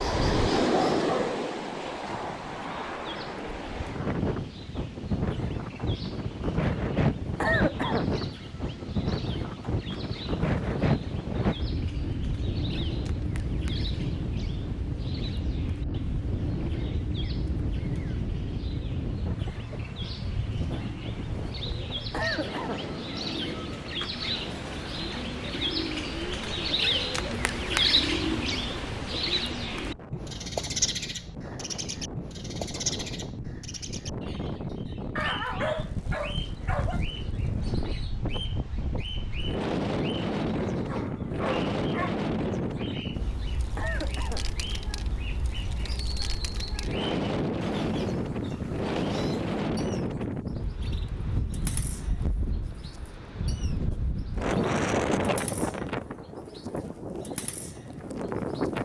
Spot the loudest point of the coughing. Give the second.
8 s.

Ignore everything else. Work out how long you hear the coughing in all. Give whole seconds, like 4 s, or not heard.
2 s.